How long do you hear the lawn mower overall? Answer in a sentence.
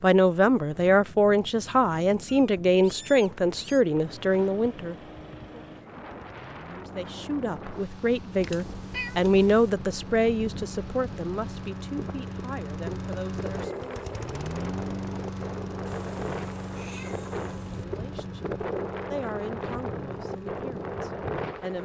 The lawn mower can be heard for 18 seconds in total.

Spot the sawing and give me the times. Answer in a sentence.
You can't hear the sawing here.